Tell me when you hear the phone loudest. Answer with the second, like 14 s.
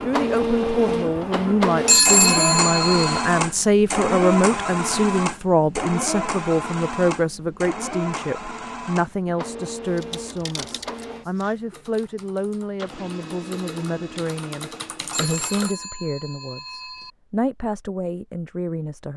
2 s.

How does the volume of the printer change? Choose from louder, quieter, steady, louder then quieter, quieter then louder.
quieter.